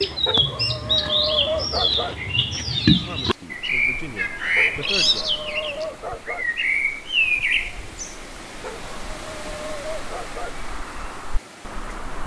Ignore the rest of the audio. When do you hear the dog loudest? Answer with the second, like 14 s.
1 s.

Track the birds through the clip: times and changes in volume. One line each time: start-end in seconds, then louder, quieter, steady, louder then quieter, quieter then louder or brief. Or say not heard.
0.0-12.2 quieter.